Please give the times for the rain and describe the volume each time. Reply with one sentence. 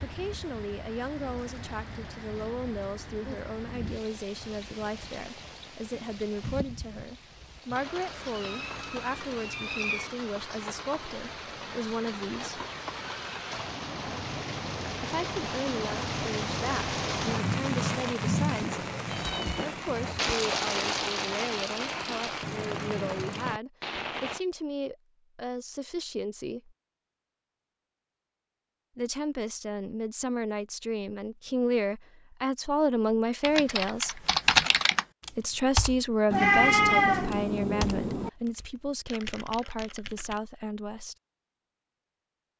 You can hear the rain from 0.0 to 24.4 s, getting louder.